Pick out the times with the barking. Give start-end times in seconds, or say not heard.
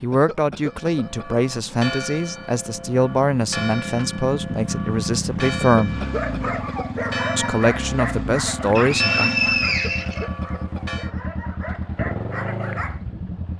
6.0-13.0.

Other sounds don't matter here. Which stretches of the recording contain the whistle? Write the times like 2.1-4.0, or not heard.
8.8-10.2.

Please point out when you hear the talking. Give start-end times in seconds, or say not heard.
0.0-6.0, 7.3-9.3.